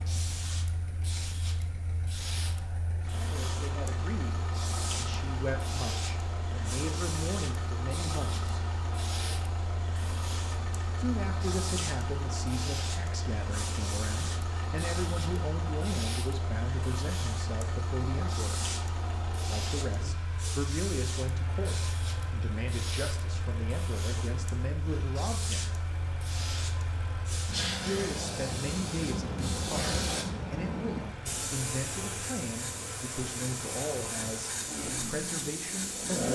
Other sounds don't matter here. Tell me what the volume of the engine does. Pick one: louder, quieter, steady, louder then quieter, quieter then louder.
steady.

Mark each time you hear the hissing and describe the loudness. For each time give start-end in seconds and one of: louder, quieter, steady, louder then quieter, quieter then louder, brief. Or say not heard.
0.0-36.2 louder.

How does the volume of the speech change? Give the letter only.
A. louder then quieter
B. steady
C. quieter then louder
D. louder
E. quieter
B.